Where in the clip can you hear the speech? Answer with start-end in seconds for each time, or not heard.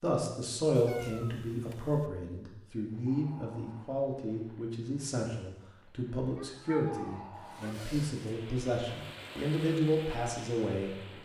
0.0-10.9.